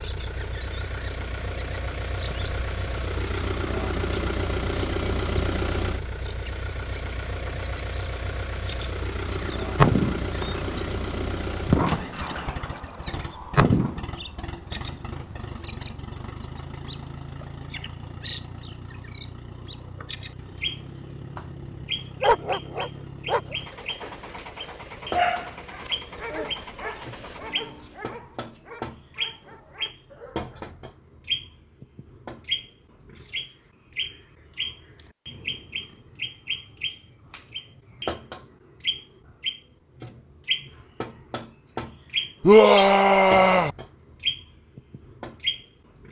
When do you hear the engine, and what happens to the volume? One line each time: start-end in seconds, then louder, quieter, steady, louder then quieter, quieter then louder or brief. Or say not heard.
0.0-28.1 quieter.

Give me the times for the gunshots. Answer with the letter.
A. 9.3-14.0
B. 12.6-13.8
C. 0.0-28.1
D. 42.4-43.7
A.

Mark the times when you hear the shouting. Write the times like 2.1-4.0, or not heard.
42.4-43.7.